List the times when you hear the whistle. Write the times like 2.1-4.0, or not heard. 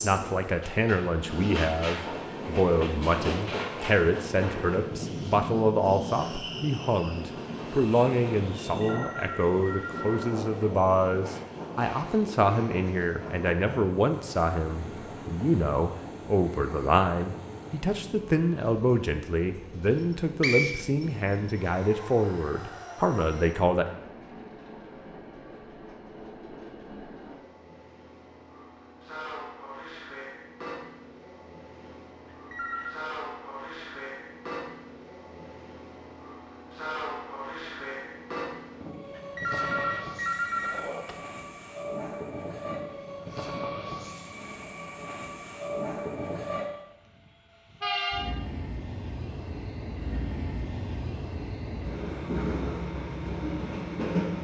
19.9-21.6.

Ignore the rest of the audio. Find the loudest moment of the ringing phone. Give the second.
40 s.